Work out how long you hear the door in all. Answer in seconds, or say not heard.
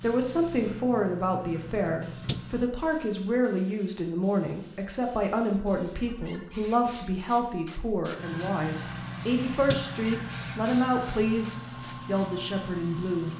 2 s.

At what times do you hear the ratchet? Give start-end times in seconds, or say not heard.
not heard.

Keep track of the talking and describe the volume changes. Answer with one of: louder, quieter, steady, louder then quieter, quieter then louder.
steady.